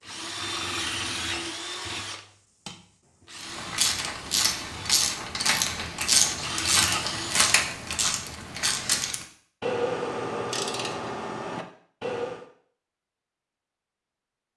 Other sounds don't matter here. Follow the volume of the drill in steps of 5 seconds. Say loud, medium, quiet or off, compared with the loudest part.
loud, loud, off.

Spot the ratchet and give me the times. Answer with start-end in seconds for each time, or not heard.
3.4-12.4.